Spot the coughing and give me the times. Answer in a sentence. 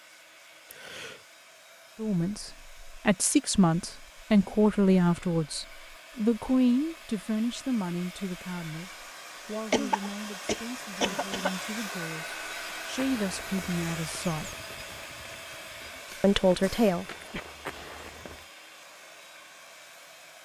The coughing can be heard from 0.7 to 1.2 s, from 9.7 to 11.6 s and from 16.1 to 17.4 s.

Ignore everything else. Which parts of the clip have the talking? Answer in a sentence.
You can hear the talking from 1.9 to 14.6 s and from 16.2 to 17.1 s.